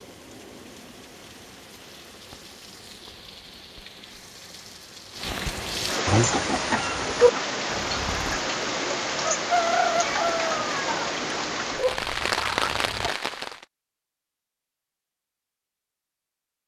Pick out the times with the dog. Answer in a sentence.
You can't hear the dog here.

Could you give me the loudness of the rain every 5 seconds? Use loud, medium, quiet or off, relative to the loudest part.
quiet, loud, loud, off.